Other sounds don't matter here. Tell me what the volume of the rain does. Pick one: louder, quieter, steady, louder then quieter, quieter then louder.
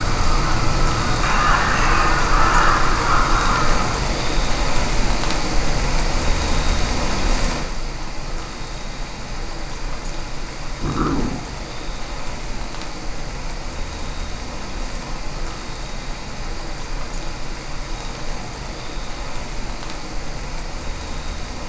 quieter.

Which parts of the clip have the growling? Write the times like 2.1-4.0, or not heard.
10.8-11.4.